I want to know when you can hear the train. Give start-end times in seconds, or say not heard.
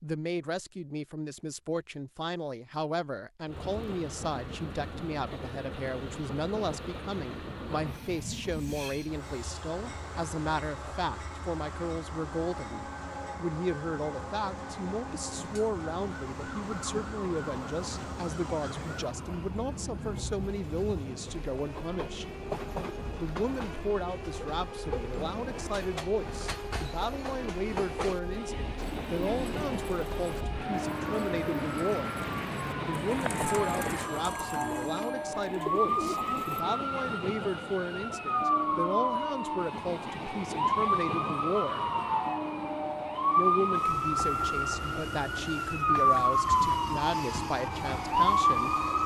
3.5-49.0.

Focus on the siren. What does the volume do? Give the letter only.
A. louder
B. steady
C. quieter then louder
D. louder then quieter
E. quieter
A.